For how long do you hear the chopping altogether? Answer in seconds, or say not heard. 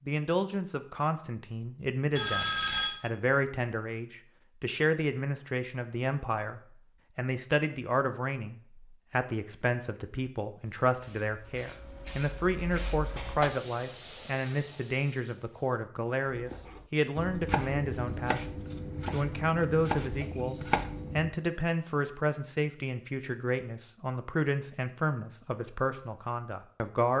5 s.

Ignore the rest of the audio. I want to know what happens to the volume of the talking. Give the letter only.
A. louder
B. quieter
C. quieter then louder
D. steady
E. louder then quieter
D.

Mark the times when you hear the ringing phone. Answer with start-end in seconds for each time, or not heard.
2.1-3.0.